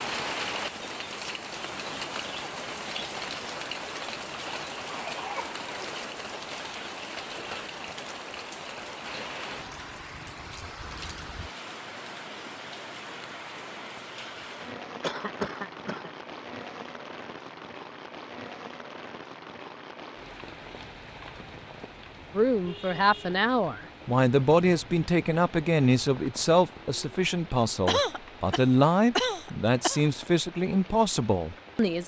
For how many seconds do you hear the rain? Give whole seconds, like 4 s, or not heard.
32 s.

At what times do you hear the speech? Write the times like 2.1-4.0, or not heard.
22.4-32.0.